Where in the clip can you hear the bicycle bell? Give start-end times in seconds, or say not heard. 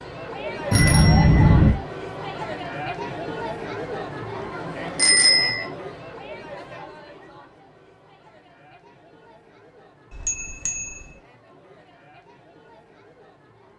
0.7-1.7, 5.0-5.7, 10.1-11.1.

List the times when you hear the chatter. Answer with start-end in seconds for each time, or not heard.
0.0-13.7.